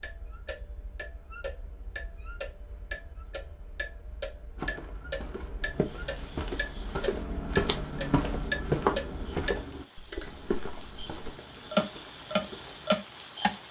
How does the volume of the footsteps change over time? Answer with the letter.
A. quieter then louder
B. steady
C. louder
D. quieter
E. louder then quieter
E.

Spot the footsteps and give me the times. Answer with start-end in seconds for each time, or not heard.
4.5-12.9.